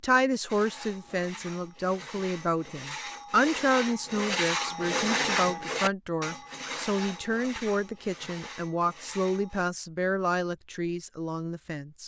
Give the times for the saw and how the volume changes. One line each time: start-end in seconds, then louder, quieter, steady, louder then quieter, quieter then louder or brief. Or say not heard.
0.5-9.7 louder then quieter.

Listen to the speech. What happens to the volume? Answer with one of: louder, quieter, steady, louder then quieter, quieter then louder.
steady.